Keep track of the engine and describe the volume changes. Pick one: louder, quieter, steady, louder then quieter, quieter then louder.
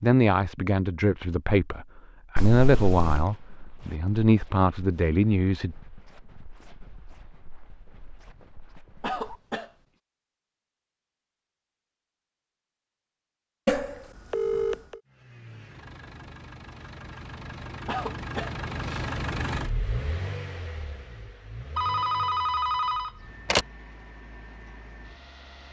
louder then quieter.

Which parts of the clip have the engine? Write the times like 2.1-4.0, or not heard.
15.1-25.6.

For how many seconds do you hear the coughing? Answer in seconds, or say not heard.
2 s.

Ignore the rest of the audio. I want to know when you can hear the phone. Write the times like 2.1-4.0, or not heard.
2.4-3.2, 13.7-14.9, 21.8-23.6.